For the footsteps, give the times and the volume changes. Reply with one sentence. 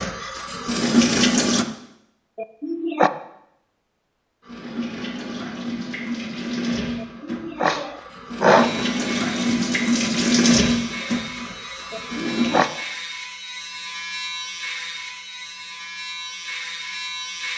You can't hear the footsteps here.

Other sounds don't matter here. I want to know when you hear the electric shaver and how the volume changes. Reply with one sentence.
You can hear the electric shaver from 8.4 to 17.5 s, at a steady volume.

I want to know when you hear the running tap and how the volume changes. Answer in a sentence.
The running tap can be heard briefly from 0.0 to 1.6 s; and from 4.4 to 12.7 s, getting louder then quieter.